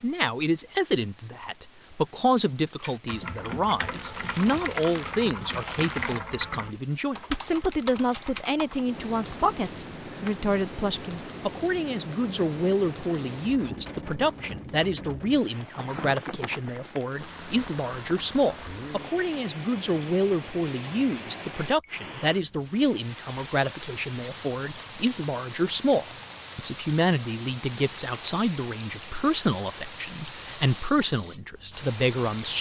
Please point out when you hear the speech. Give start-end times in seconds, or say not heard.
0.0-32.5.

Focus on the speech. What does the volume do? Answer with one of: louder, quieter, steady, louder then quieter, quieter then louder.
steady.